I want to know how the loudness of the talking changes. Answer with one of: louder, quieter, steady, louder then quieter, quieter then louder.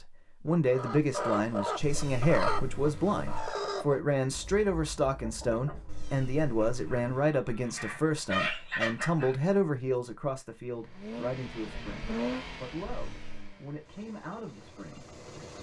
quieter.